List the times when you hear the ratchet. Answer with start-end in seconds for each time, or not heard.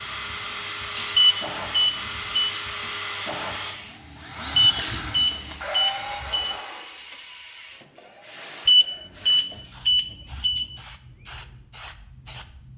not heard.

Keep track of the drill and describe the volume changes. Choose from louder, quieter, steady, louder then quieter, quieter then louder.
steady.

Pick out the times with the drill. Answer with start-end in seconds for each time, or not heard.
0.0-7.2.